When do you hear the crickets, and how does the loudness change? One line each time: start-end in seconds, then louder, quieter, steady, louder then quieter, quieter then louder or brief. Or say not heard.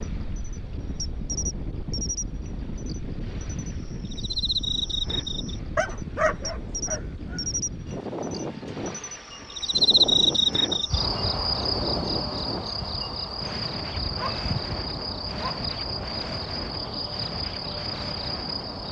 0.0-18.8 louder then quieter.